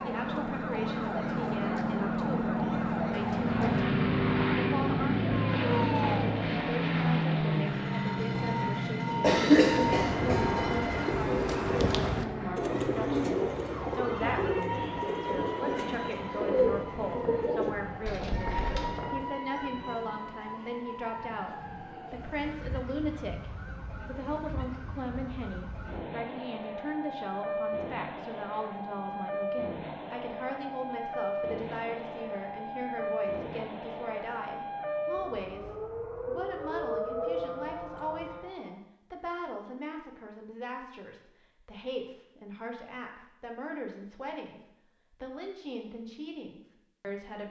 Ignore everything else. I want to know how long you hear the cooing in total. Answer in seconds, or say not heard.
10 s.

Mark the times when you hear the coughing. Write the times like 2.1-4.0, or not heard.
8.4-10.5.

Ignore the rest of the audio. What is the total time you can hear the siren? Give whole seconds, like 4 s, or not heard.
39 s.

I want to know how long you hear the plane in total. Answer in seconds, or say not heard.
19 s.